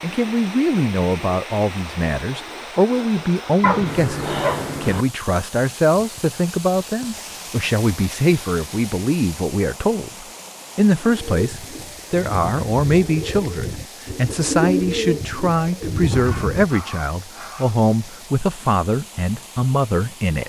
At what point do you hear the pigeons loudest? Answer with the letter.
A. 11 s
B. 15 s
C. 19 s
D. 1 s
B.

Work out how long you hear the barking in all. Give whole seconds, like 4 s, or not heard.
3 s.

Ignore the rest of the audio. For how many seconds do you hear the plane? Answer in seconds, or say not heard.
not heard.